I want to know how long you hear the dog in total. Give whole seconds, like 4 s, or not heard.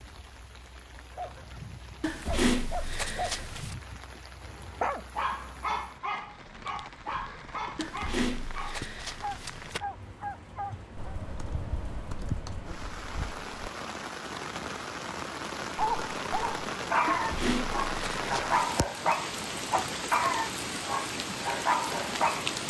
17 s.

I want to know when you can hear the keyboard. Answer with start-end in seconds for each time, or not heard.
10.9-13.4.